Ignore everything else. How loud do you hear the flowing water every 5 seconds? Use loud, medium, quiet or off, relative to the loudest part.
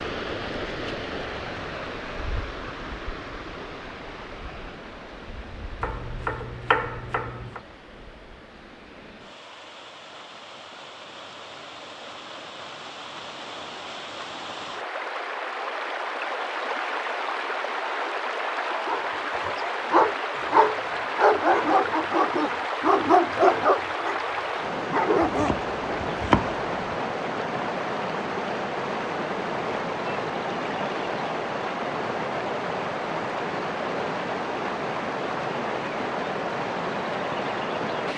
medium, quiet, medium, loud, loud, loud, loud, loud.